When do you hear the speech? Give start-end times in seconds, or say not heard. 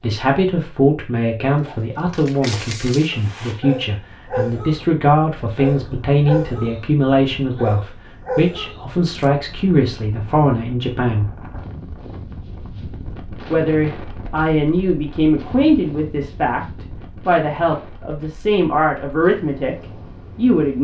0.0-11.3, 13.5-19.8, 20.4-20.8.